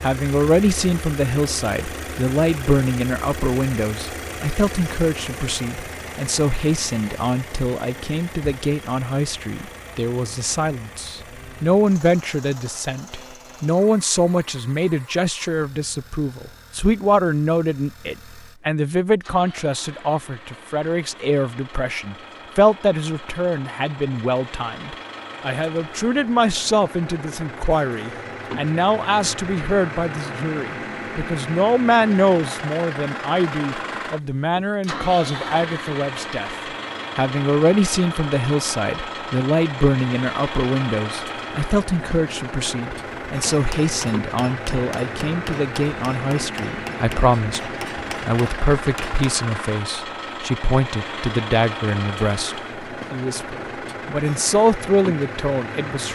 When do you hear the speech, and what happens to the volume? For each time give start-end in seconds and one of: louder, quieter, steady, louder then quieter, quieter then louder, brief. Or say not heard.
0.0-36.5 steady
37.1-56.1 steady.